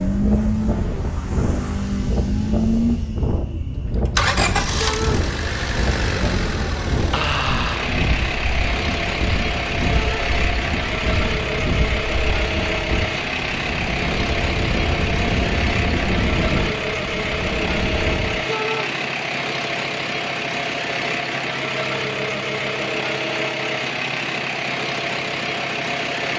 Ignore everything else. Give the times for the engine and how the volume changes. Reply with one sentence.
You can hear the engine from 0.0 to 26.3 s, at a steady volume.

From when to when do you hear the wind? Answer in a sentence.
You can hear the wind from 0.0 to 18.4 s.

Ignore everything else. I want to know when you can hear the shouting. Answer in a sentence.
The shouting can be heard from 4.8 to 5.2 s, from 9.9 to 10.3 s and from 18.4 to 18.9 s.